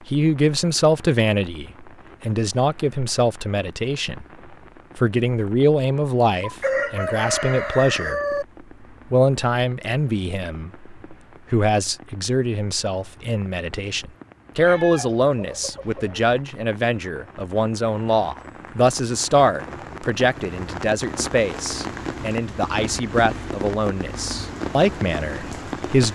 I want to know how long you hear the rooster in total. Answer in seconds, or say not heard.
4 s.